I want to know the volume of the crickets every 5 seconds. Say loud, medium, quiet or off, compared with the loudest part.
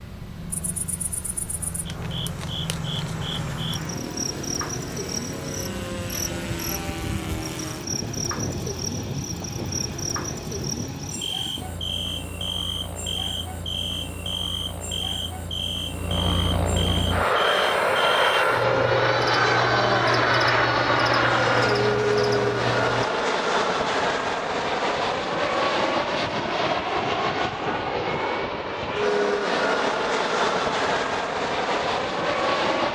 loud, loud, loud, loud, loud, off, off.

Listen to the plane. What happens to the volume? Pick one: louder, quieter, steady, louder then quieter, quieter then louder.
louder.